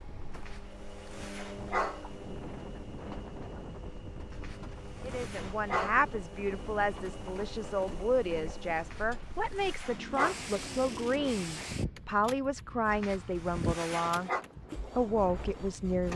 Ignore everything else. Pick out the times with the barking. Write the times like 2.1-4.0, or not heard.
0.5-2.0, 4.3-6.0, 8.9-10.3, 12.9-14.4.